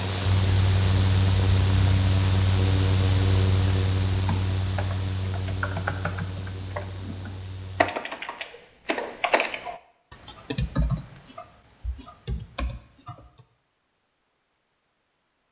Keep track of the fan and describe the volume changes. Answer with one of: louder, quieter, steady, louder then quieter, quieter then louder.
quieter.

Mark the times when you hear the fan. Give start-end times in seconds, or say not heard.
0.0-8.0.